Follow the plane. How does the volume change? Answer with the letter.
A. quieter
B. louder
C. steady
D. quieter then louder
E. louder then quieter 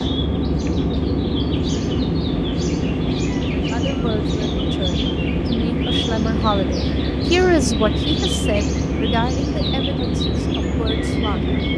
C.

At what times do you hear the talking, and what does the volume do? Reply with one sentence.
The talking can be heard from 3.5 to 11.5 s, getting louder then quieter.